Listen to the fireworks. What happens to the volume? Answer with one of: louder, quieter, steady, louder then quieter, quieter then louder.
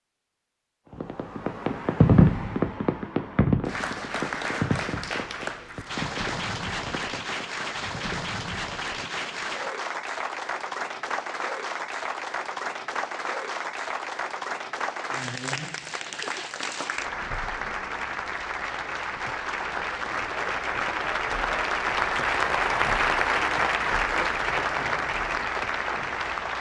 quieter.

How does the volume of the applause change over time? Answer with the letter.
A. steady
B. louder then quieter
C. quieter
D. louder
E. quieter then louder
D.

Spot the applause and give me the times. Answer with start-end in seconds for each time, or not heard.
3.6-26.5.